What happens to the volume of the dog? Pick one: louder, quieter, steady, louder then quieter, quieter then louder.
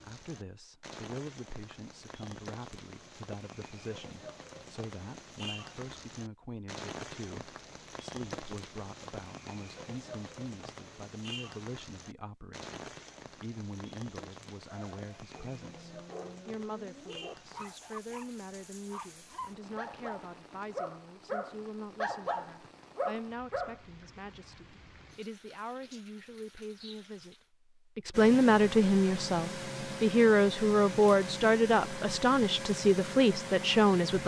louder.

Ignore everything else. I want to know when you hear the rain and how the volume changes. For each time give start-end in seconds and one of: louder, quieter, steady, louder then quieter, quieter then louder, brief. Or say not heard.
0.0-27.5 quieter.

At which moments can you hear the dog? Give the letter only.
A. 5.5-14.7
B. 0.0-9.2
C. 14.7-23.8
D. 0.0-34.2
C.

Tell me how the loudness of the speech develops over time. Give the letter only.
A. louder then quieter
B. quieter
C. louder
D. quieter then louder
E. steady
C.